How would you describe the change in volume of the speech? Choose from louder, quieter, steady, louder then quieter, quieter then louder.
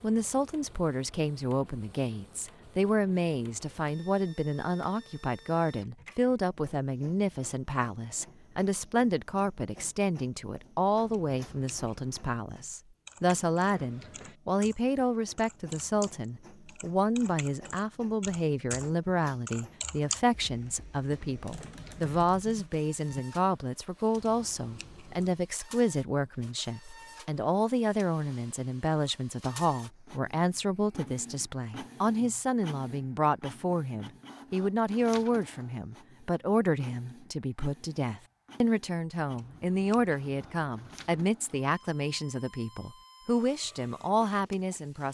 steady.